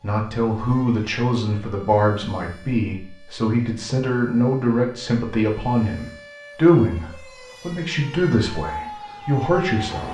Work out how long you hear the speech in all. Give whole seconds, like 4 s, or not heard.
10 s.